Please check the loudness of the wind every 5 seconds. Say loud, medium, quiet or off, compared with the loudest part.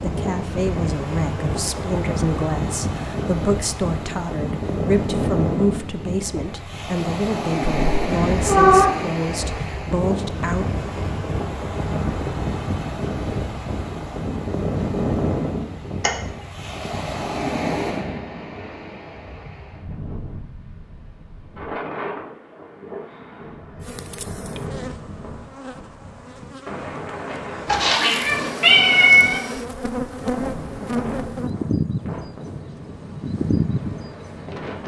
loud, loud, loud, loud, medium, medium, medium.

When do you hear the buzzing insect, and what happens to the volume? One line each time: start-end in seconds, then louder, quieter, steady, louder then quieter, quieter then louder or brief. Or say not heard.
23.8-34.7 louder.